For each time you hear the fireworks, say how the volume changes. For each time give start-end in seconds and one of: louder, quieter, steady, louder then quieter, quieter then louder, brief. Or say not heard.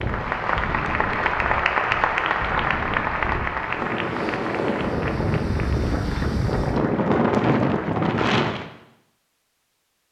not heard.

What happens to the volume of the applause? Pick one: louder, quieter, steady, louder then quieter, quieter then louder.
quieter.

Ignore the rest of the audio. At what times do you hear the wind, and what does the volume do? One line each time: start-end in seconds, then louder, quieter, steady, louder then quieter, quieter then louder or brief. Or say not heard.
0.0-8.7 louder.